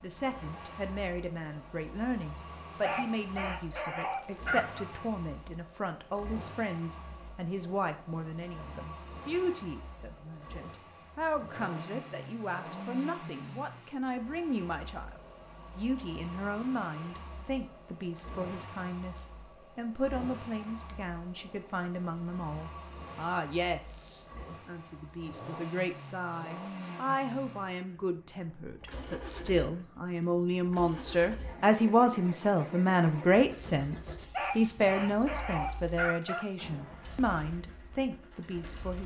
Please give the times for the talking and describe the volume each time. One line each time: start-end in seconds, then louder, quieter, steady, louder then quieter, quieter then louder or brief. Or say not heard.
0.0-39.0 louder.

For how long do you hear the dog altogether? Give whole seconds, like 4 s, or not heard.
4 s.